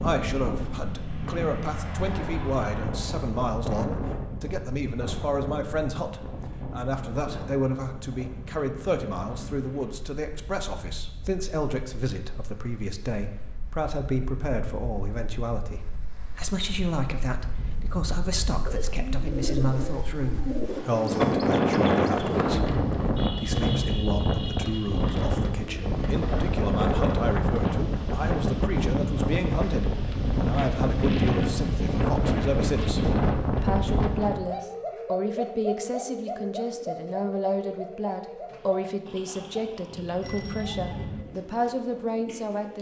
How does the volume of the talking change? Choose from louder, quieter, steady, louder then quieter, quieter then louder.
steady.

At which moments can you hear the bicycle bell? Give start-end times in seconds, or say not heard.
40.2-41.2.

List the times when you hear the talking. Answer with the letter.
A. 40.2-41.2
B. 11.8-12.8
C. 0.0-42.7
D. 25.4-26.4
C.